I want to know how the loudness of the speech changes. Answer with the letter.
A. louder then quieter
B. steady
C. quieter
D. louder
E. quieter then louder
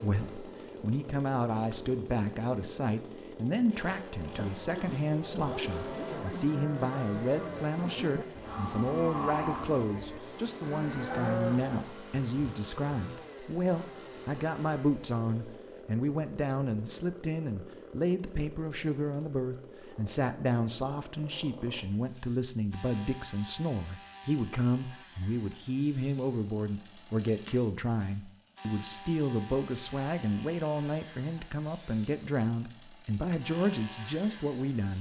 B.